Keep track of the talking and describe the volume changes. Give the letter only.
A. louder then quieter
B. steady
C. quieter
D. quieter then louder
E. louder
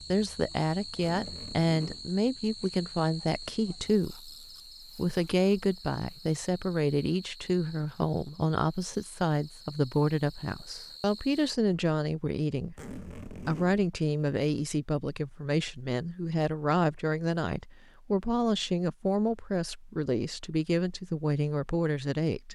B.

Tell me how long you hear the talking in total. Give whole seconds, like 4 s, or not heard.
22 s.